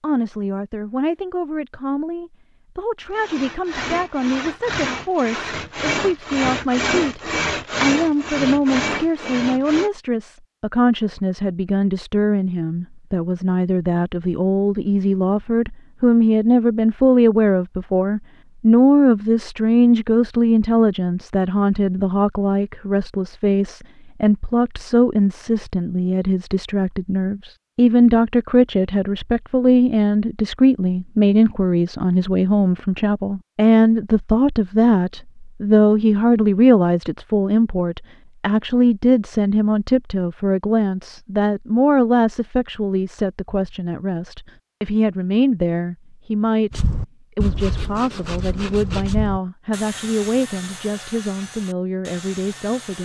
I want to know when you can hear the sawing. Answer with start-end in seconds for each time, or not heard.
3.1-9.9, 46.7-53.0.